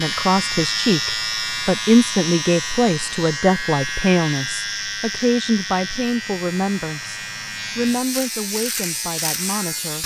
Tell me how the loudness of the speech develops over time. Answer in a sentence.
The volume of the speech goes down.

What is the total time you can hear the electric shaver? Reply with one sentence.
You can hear the electric shaver for 10 seconds altogether.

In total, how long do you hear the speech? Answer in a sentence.
You can hear the speech for 10 seconds altogether.